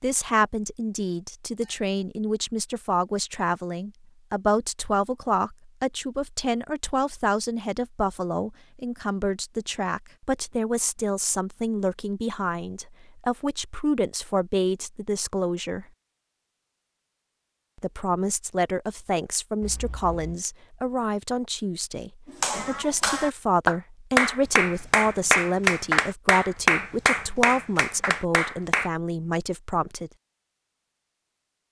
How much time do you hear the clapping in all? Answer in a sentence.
You can hear the clapping for 7 seconds altogether.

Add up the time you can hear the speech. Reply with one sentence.
You can hear the speech for 28 seconds altogether.